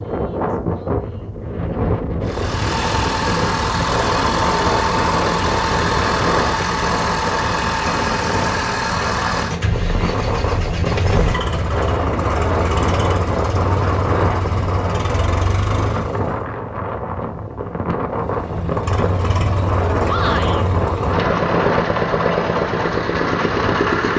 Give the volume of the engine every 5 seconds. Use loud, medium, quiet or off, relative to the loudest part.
loud, loud, medium, medium, loud.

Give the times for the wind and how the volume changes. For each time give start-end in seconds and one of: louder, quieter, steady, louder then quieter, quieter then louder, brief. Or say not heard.
0.0-24.1 steady.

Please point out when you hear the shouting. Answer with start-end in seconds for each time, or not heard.
20.1-20.6.